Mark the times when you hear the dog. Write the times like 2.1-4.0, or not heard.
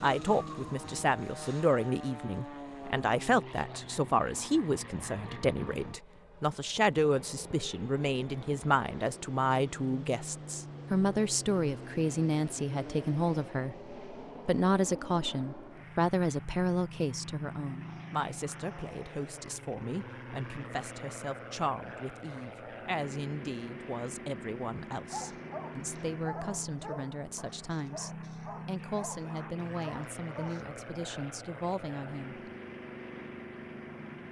25.1-30.6.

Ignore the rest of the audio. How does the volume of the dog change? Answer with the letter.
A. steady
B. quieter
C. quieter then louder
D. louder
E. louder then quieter
C.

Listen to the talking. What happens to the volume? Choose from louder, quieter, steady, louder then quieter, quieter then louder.
quieter.